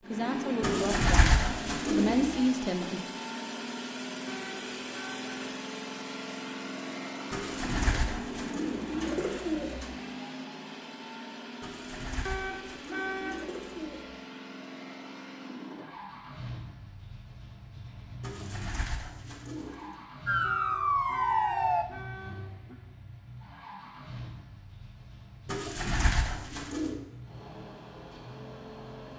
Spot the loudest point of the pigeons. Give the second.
1 s.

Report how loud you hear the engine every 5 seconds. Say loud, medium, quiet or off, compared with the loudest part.
loud, loud, medium, medium, medium, medium.